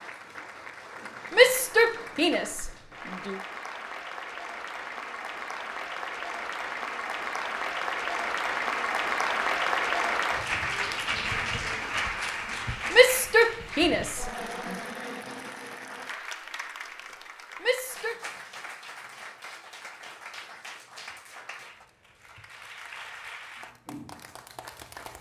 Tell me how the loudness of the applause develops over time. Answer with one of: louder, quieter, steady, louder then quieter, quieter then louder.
louder then quieter.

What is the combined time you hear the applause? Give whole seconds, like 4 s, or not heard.
25 s.